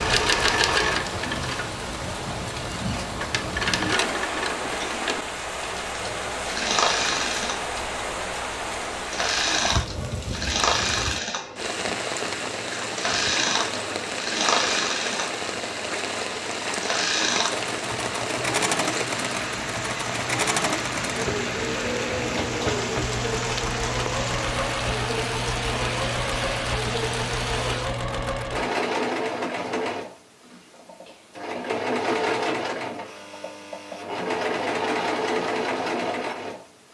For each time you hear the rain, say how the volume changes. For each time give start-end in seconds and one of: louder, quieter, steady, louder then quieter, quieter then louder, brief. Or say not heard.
0.0-28.0 steady.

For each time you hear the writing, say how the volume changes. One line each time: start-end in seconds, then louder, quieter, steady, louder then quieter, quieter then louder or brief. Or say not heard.
not heard.